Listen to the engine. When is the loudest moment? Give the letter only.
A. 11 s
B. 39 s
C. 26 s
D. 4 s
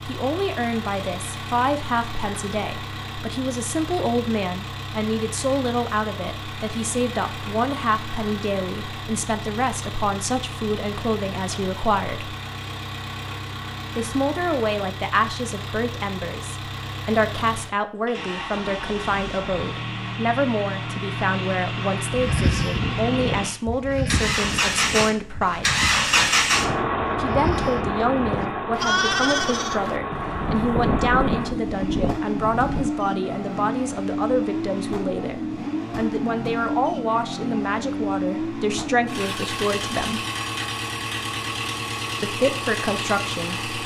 C.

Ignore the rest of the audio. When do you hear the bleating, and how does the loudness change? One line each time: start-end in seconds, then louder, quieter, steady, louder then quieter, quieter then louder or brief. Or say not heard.
22.1-32.9 quieter then louder.